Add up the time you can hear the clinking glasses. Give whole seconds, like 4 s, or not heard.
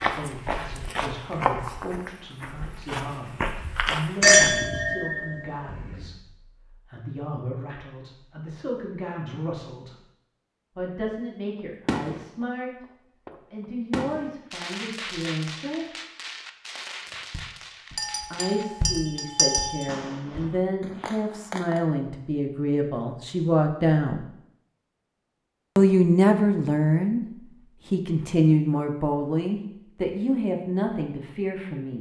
4 s.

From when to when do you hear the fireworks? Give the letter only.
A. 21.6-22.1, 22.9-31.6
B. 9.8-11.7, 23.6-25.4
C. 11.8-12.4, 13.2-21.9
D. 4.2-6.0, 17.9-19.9
C.